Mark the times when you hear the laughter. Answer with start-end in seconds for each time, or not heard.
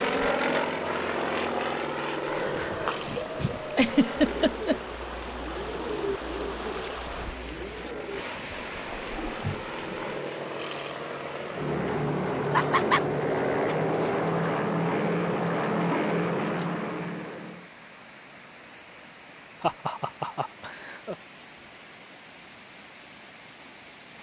3.7-4.8, 12.5-13.1, 19.6-21.1.